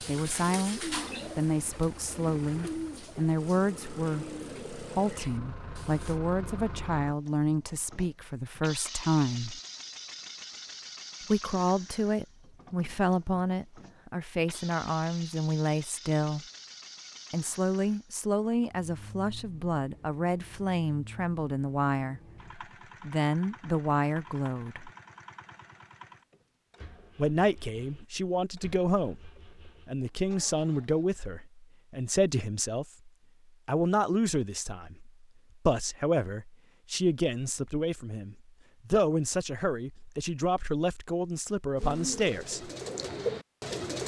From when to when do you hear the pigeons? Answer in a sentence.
The pigeons can be heard from 0.0 to 6.2 s and from 41.8 to 44.0 s.